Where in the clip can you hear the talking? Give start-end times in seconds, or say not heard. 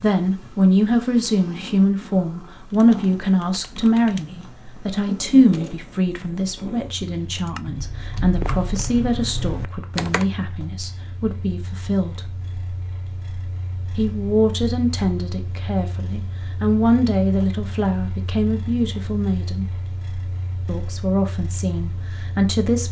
0.0-12.3, 13.9-19.8, 20.6-22.8.